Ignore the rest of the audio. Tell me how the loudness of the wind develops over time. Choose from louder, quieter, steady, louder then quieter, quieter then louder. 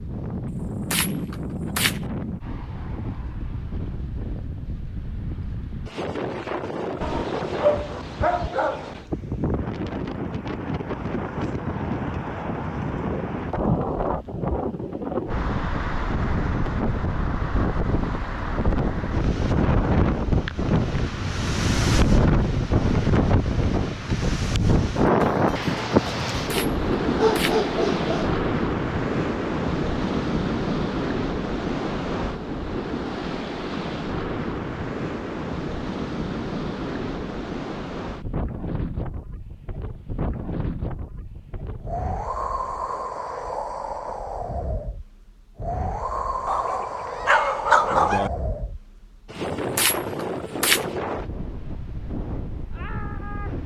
louder then quieter.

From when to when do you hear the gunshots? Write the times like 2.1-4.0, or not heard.
0.5-2.0, 26.3-27.6, 49.4-50.9.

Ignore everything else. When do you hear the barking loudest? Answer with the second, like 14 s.
48 s.